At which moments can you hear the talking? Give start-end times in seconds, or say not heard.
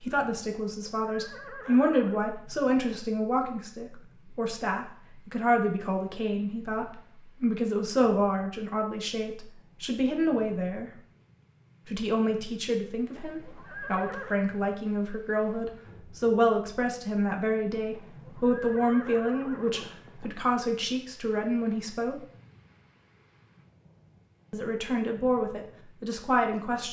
0.0-10.9, 11.8-22.1, 24.5-26.8.